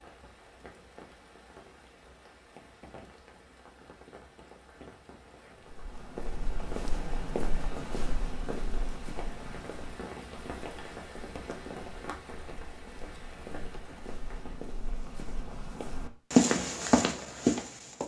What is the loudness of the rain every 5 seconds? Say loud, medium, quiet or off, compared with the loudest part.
medium, loud, loud, off.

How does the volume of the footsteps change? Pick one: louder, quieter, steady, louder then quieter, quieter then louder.
quieter then louder.